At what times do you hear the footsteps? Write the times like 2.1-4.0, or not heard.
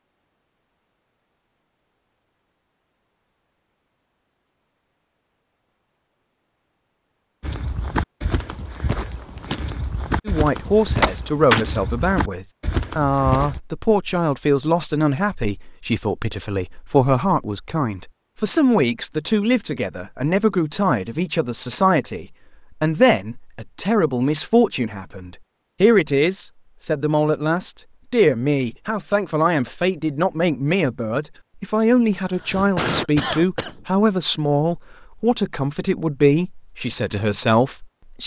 7.4-13.6.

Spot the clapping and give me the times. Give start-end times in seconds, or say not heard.
not heard.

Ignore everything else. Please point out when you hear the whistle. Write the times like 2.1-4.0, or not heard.
not heard.